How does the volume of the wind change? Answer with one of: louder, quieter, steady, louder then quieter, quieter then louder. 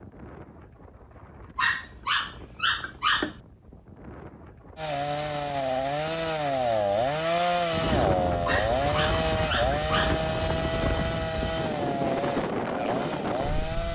louder.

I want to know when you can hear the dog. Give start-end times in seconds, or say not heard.
1.6-3.4, 8.4-10.2.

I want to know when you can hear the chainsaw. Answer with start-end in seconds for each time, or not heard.
4.8-13.9.